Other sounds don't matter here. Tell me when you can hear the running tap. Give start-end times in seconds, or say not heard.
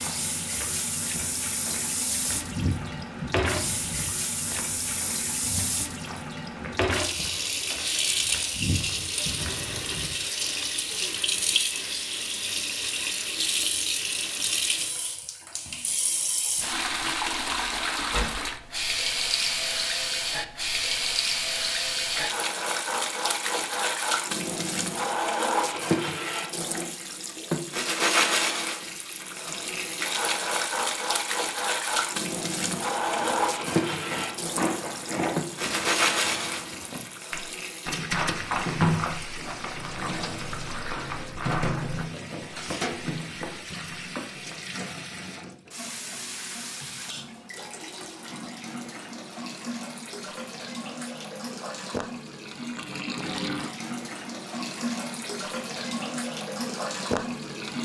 0.0-57.7.